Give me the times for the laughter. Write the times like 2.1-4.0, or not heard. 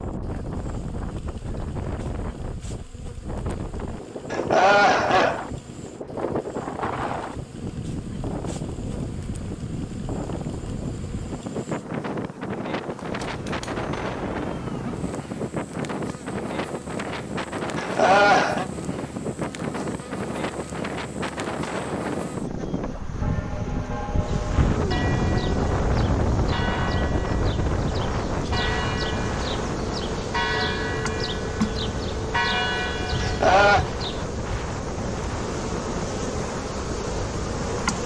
4.3-5.5, 17.8-18.6, 33.2-33.9.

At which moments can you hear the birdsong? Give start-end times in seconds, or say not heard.
not heard.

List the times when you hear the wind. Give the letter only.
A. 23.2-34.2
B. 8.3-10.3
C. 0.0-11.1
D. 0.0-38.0
D.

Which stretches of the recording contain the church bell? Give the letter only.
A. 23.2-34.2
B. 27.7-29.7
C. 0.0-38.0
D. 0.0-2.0
A.